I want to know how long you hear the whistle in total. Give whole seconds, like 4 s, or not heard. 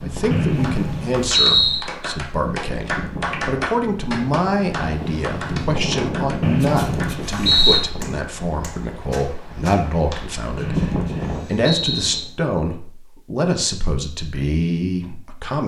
5 s.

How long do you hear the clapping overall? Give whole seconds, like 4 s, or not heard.
10 s.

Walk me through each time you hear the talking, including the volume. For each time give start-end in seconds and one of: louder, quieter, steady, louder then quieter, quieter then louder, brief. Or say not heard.
0.0-15.6 steady.